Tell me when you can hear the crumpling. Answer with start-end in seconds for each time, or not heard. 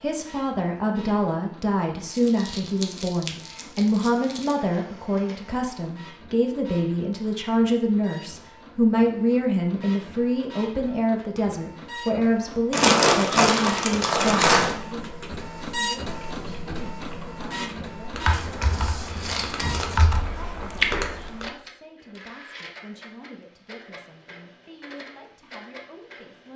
2.1-4.5, 12.7-14.8, 18.3-20.1.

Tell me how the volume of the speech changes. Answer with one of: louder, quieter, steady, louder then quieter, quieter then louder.
quieter.